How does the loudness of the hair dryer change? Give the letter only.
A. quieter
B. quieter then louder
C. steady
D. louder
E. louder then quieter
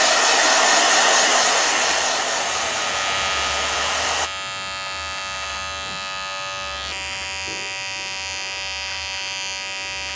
A.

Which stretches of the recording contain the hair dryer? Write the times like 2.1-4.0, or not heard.
0.0-4.3.